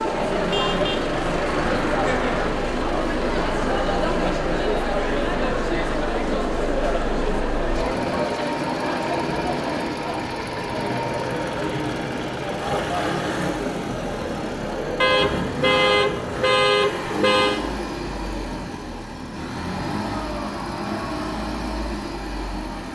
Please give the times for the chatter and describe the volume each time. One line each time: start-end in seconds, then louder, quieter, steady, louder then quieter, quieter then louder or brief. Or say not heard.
0.0-22.9 quieter.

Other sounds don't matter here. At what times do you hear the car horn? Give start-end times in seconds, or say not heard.
0.5-2.5, 15.0-17.6.